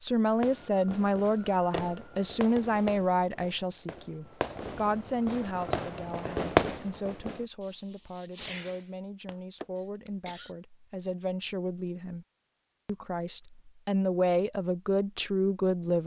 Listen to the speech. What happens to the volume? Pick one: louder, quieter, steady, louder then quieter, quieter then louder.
quieter then louder.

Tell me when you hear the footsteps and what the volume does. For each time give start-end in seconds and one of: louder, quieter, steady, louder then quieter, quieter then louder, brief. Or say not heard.
not heard.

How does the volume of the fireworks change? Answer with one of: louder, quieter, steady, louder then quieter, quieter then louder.
louder then quieter.